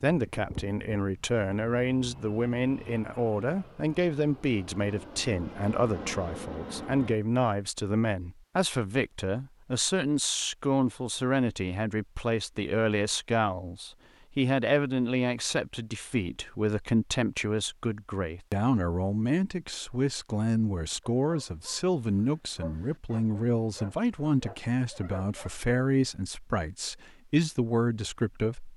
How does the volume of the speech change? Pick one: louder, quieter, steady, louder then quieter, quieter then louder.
steady.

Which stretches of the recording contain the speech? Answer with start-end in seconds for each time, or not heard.
0.0-28.7.